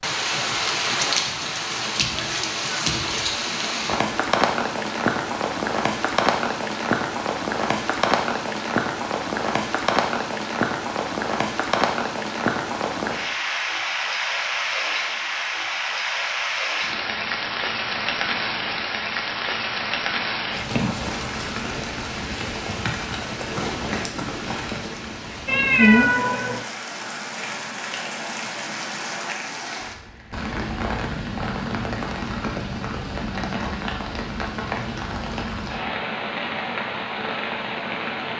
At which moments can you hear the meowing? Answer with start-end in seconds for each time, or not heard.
25.4-26.6.